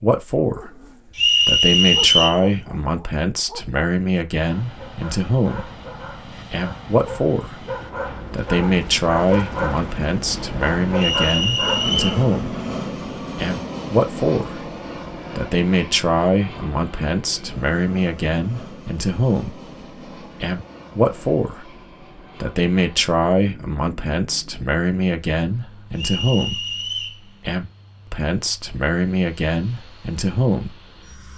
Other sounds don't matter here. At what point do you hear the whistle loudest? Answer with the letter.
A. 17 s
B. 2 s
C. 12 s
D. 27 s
B.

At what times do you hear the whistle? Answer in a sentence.
You can hear the whistle from 1.1 to 2.4 s, from 10.9 to 12.2 s and from 25.9 to 27.2 s.